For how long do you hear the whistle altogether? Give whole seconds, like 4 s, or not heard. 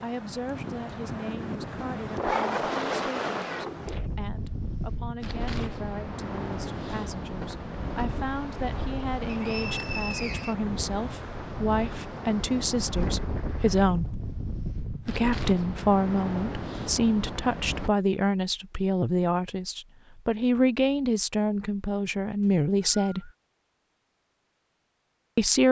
2 s.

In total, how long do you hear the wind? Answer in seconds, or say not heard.
18 s.